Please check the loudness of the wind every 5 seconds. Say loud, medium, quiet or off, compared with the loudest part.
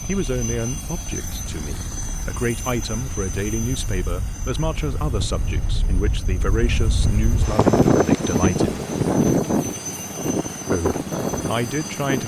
quiet, loud, medium.